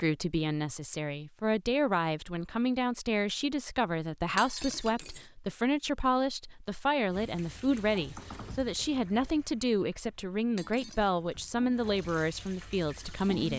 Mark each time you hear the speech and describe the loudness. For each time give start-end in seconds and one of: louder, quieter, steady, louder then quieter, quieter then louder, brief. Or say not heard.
0.0-13.5 steady.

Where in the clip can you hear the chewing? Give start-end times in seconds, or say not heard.
not heard.